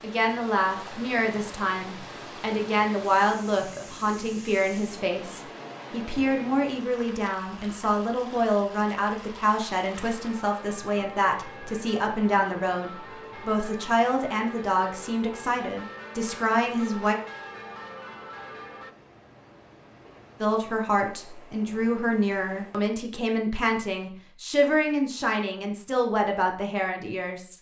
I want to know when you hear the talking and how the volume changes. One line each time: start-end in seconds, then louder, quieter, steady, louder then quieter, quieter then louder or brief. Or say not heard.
0.0-17.1 steady
20.4-27.5 steady.